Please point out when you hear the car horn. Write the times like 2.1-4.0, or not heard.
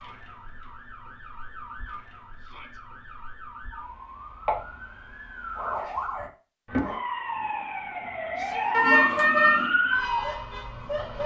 8.7-9.7.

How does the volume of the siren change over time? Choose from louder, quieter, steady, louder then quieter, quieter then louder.
louder.